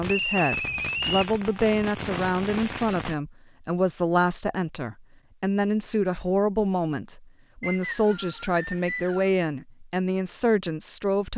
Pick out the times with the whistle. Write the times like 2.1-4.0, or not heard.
0.1-1.2, 7.6-9.3.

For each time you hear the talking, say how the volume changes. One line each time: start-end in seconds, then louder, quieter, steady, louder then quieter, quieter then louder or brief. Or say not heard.
0.0-11.3 steady.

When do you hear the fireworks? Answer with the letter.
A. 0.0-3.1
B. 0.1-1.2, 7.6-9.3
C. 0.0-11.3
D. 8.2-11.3
A.